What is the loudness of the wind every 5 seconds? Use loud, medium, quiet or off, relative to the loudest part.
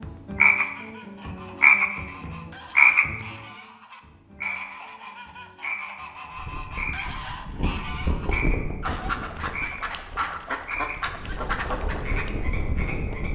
off, loud, loud.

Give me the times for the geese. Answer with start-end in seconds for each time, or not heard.
0.5-12.3.